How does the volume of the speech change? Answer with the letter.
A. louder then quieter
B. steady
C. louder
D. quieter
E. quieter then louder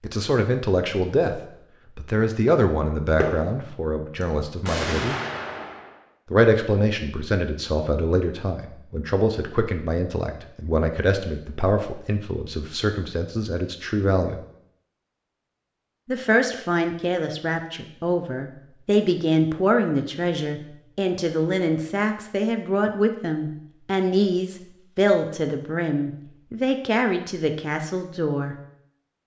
B.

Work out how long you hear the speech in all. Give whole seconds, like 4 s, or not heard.
26 s.